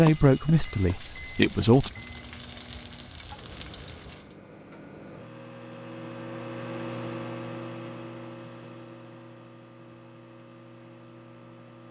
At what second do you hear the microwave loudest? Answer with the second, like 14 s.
7 s.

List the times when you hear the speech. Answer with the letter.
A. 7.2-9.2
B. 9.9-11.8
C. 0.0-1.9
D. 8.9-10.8
C.